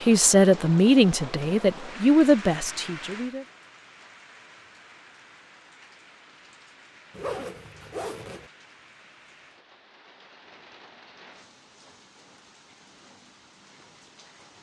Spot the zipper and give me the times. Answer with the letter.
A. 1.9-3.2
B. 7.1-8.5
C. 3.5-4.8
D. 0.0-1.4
B.